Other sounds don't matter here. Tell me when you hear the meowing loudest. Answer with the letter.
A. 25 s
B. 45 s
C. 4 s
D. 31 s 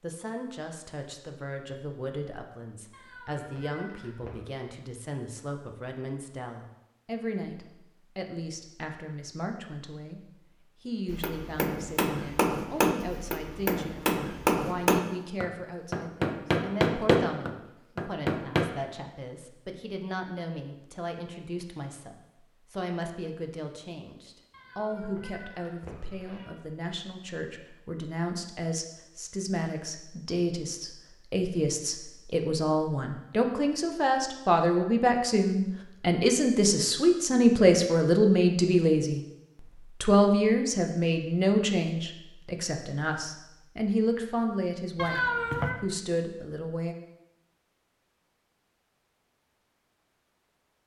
B.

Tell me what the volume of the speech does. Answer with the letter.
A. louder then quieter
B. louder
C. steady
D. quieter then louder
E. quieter
B.